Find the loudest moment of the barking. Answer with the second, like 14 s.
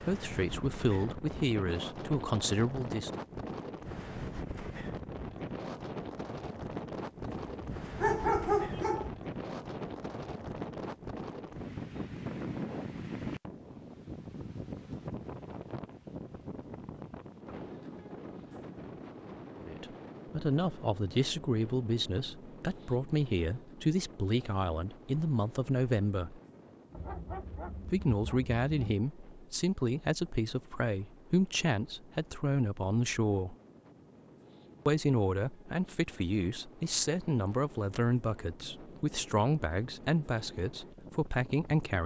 8 s.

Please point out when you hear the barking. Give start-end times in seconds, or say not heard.
7.2-9.1, 26.9-28.9.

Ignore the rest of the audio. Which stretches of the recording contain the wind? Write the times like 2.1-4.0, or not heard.
0.0-42.0.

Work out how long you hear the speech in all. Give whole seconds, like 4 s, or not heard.
23 s.